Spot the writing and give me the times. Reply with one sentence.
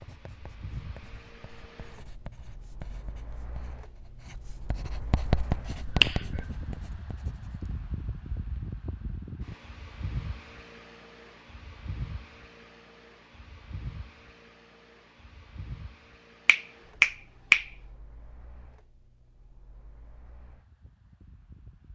You can hear the writing from 0.0 to 7.8 s.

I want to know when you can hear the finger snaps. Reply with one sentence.
You can hear the finger snaps from 5.8 to 6.6 s and from 16.4 to 17.6 s.